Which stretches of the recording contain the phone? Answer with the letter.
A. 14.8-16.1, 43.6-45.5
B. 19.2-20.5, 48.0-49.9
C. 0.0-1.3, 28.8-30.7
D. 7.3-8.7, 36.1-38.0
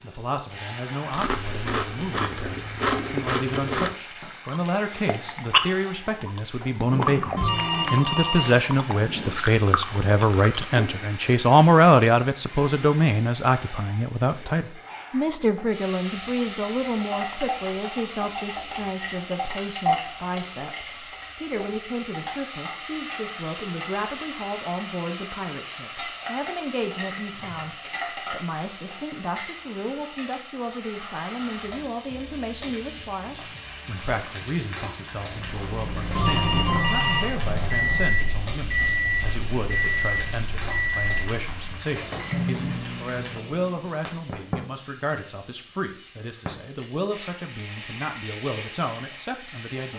D.